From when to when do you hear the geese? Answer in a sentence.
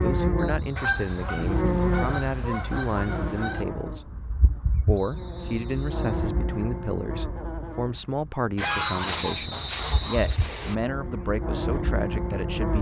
The geese can be heard from 0.8 to 3.6 s and from 8.6 to 10.2 s.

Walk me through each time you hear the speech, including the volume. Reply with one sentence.
You can hear the speech from 0.0 to 12.7 s, at a steady volume.